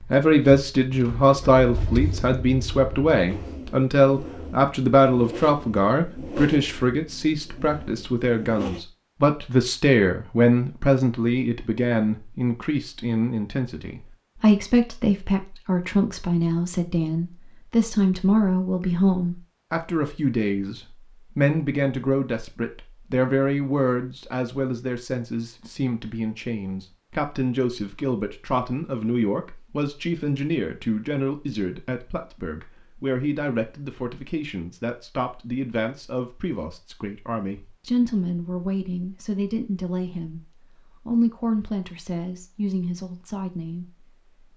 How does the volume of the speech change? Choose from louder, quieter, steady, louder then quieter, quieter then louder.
quieter.